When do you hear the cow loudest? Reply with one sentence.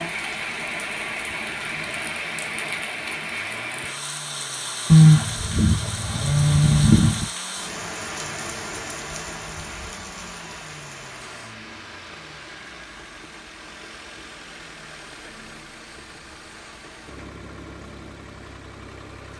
The loudest moment of the cow is at 5 seconds.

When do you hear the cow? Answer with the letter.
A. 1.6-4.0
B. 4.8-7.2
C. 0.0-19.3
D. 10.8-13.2
B.